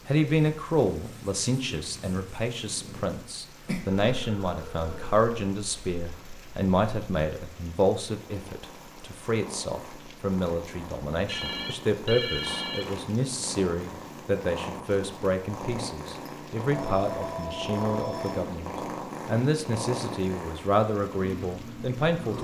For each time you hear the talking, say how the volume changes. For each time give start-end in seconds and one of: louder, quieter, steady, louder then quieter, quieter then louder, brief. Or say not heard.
0.1-22.3 steady.